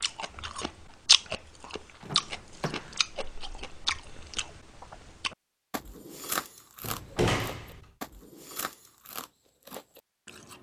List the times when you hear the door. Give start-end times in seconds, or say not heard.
2.0-3.0, 6.8-7.8.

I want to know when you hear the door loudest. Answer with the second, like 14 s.
7 s.